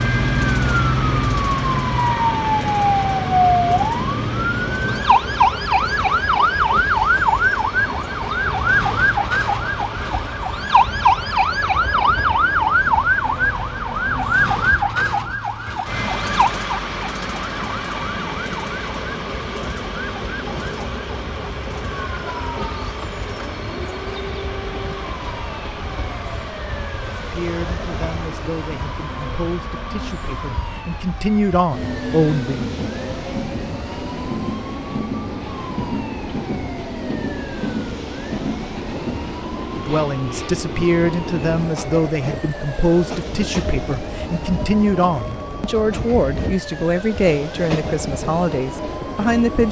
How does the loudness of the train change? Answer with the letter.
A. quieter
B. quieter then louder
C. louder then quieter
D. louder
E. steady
E.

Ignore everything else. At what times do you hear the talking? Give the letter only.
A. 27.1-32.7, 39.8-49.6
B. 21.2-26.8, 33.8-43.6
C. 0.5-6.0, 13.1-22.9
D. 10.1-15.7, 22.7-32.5
A.